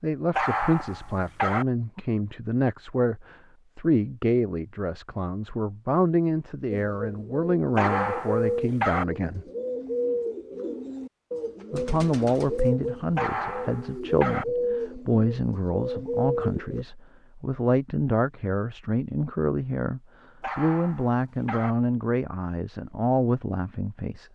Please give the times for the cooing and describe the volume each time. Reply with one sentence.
You can hear the cooing from 6.7 to 16.9 s, at a steady volume.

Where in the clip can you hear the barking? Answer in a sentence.
You can hear the barking from 0.3 to 1.6 s, from 7.8 to 9.1 s, from 13.2 to 14.4 s and from 20.4 to 21.8 s.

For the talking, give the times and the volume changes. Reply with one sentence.
The talking can be heard from 0.0 to 9.4 s, at a steady volume; and from 11.7 to 24.3 s, at a steady volume.